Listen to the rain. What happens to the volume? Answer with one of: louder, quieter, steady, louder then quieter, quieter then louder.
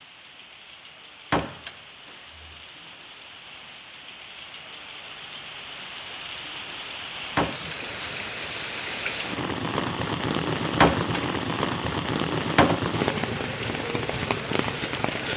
louder.